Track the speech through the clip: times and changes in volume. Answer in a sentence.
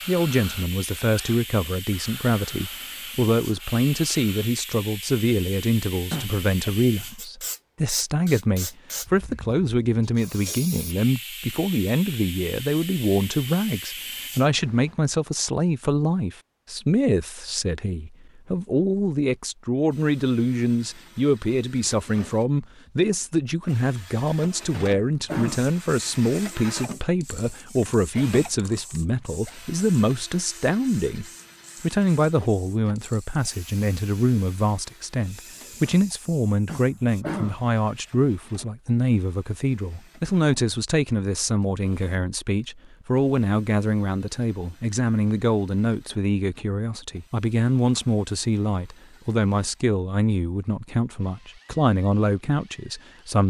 The speech can be heard from 0.1 to 53.4 s, at a steady volume.